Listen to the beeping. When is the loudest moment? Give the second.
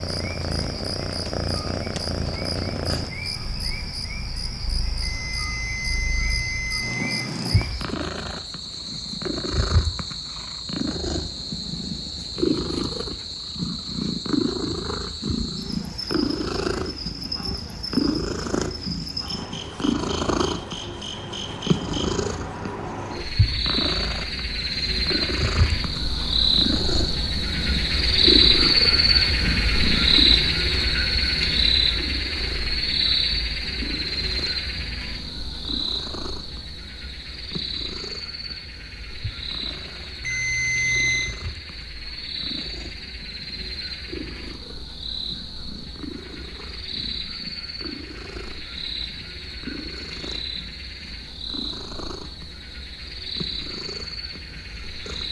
41 s.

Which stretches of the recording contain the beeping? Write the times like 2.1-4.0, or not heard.
5.0-7.3, 40.2-41.4.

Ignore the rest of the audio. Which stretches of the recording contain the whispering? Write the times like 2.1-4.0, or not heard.
not heard.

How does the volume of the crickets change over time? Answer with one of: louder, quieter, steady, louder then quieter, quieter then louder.
louder then quieter.